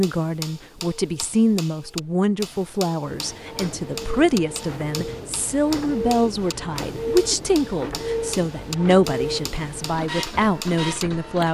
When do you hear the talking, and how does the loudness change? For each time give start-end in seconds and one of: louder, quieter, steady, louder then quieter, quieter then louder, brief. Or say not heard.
0.0-11.4 steady.